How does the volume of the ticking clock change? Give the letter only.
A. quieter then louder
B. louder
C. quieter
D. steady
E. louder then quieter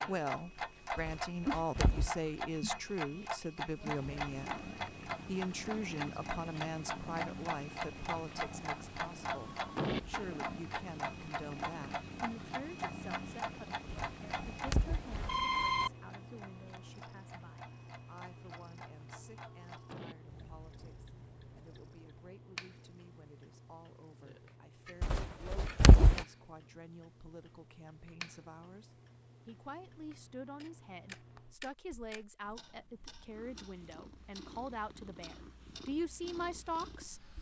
C.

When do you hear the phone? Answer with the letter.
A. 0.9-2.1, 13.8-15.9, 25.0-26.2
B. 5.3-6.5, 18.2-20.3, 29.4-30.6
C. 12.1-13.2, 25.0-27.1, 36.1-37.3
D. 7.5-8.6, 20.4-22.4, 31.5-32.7
A.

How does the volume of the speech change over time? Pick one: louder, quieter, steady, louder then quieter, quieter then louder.
quieter then louder.